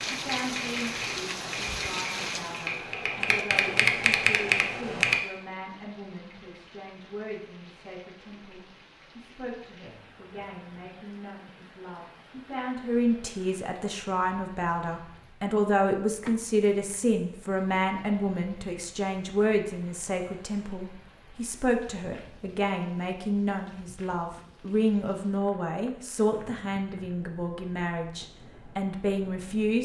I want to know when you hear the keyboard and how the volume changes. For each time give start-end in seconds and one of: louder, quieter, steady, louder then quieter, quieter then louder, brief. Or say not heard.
0.0-5.2 louder.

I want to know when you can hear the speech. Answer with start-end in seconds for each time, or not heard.
0.1-29.7.